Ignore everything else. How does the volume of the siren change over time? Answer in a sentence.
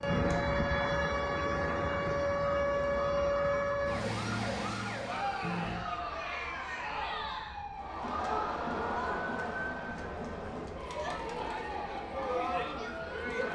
The volume of the siren goes down.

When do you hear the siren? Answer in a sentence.
You can hear the siren from 0.0 to 13.4 s.